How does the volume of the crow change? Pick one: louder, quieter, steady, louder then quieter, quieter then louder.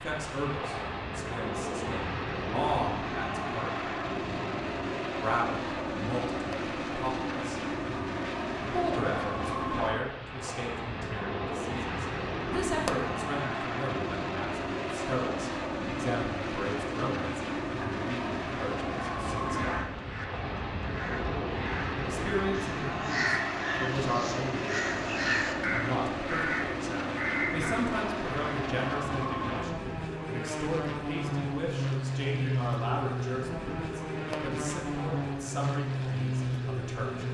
louder.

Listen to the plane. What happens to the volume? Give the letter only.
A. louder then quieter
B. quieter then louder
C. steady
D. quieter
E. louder
C.